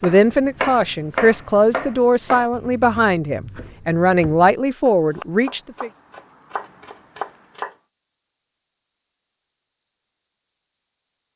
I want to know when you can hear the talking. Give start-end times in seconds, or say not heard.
0.0-5.9.